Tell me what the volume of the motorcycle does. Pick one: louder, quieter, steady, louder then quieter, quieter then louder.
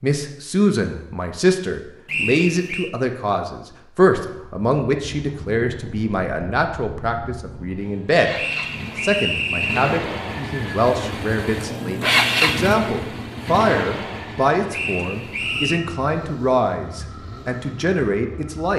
louder then quieter.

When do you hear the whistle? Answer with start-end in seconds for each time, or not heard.
2.0-2.9, 8.3-10.0, 14.7-15.8.